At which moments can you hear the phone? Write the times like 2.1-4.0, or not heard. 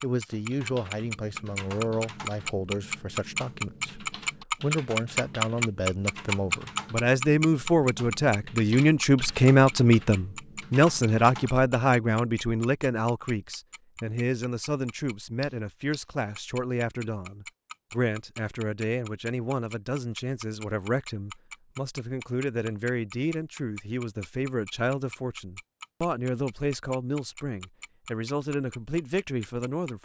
not heard.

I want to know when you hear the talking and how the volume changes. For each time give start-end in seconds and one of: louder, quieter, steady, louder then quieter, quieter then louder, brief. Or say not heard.
0.0-30.0 louder then quieter.